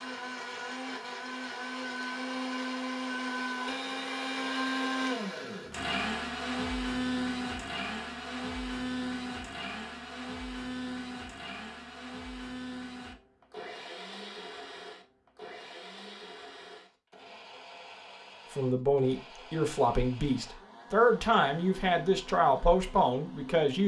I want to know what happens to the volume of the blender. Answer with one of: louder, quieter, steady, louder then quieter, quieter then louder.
quieter.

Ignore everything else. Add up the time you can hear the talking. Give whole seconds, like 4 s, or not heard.
5 s.